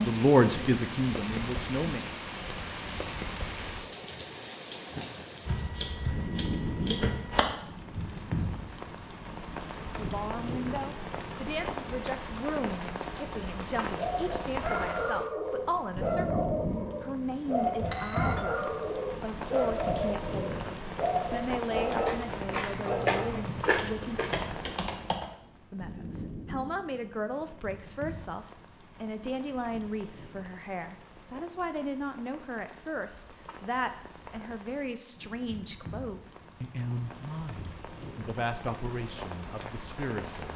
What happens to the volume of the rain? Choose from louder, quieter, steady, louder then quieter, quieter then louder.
quieter.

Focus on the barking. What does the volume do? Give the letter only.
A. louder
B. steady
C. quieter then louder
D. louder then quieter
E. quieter
B.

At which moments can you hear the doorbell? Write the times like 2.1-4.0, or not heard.
17.9-19.0.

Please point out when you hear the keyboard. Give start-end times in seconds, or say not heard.
5.5-7.5, 23.6-25.4.